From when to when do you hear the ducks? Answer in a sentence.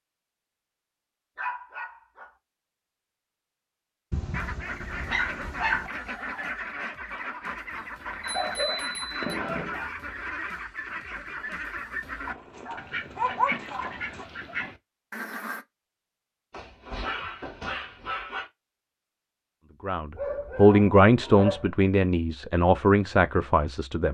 The ducks can be heard from 4.3 to 15.7 s.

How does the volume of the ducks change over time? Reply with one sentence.
The loudness of the ducks stays about the same.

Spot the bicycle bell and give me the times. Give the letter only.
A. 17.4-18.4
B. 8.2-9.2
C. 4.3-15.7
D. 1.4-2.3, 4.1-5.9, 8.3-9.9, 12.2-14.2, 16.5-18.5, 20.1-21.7
B.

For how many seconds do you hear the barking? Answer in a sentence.
You can hear the barking for 10 seconds altogether.